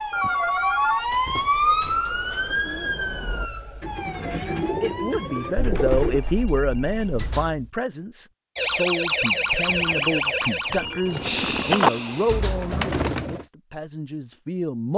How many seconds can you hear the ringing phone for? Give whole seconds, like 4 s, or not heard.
4 s.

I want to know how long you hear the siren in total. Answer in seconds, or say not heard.
10 s.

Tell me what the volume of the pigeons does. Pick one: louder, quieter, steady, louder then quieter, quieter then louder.
louder.